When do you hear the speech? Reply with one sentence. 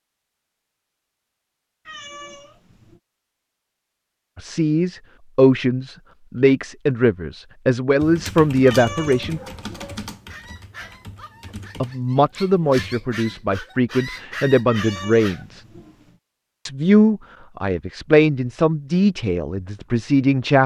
You can hear the speech from 4.3 to 9.4 s, from 11.8 to 15.6 s and from 16.6 to 20.6 s.